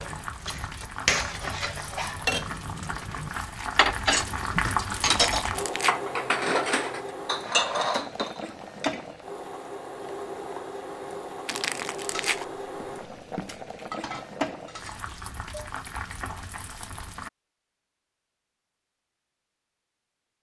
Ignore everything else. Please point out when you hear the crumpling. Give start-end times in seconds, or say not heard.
5.2-6.0, 11.4-12.4.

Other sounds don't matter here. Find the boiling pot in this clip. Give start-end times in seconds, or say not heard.
0.0-17.3.